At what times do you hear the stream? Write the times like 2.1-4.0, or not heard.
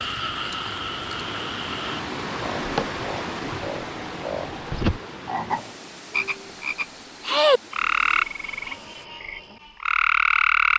0.0-9.1.